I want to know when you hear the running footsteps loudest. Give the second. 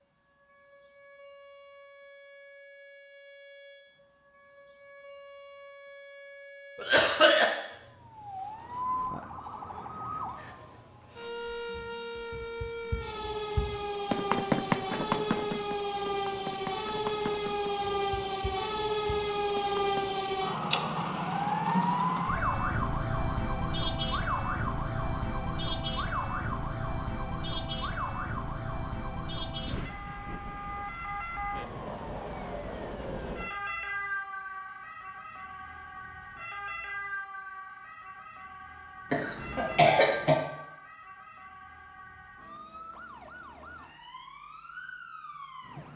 15 s.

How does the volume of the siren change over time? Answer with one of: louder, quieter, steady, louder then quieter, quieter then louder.
louder then quieter.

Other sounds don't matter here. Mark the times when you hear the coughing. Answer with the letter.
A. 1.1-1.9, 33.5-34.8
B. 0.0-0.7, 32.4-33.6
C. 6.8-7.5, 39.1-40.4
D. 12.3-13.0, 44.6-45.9
C.